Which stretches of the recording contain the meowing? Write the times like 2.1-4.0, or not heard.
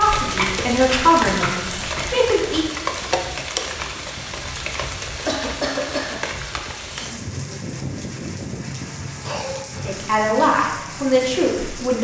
not heard.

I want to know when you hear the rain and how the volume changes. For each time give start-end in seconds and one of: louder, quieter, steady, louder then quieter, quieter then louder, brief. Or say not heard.
0.0-11.9 quieter.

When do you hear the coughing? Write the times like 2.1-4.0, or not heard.
0.3-2.1, 4.8-6.2, 9.2-9.9.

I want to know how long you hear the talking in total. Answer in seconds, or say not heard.
5 s.